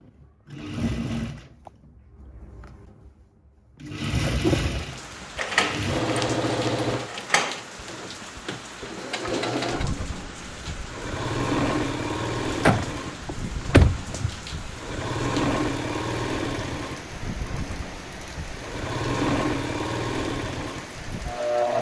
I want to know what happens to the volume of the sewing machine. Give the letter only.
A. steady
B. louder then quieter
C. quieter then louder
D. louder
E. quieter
A.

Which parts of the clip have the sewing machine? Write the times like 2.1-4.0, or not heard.
0.0-21.7.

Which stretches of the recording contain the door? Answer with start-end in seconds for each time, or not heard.
5.3-7.6, 12.7-14.3.